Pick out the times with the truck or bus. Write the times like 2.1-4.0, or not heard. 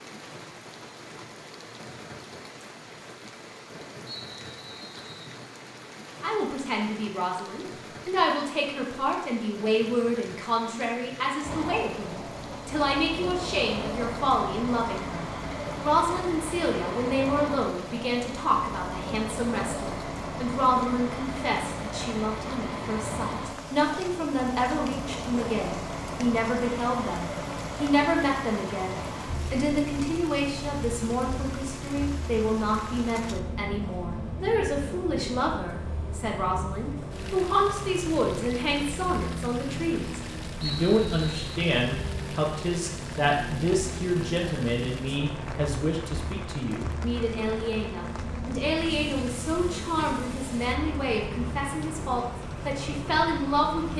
11.4-53.9.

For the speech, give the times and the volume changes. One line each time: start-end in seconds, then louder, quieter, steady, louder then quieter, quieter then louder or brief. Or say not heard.
6.2-53.9 steady.